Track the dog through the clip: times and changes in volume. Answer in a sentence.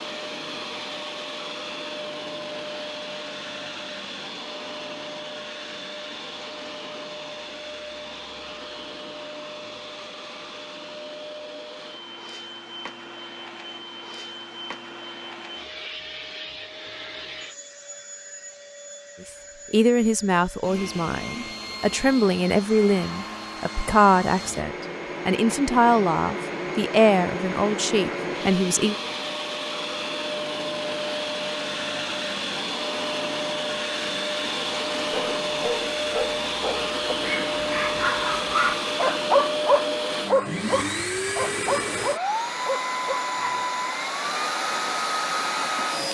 The dog can be heard from 35.1 to 43.6 s, getting louder then quieter.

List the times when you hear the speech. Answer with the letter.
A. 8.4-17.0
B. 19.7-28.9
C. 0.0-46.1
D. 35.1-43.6
B.